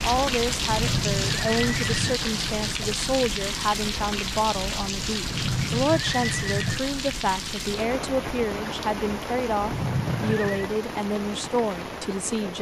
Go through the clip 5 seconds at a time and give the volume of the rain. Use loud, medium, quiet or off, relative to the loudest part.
loud, loud, medium.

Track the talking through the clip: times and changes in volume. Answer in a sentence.
The talking can be heard from 0.0 to 12.5 s, at a steady volume.